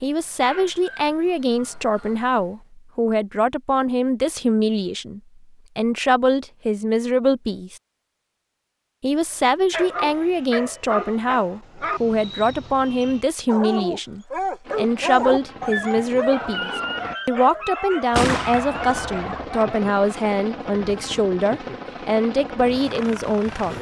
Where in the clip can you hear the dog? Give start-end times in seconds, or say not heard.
0.0-2.5, 9.3-19.9.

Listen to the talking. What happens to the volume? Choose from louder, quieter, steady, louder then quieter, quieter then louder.
steady.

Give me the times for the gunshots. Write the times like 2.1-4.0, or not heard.
18.1-19.4.